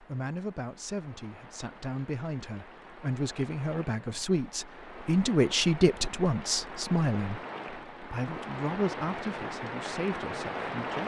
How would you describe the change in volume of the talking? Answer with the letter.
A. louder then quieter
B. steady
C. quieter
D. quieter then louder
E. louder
A.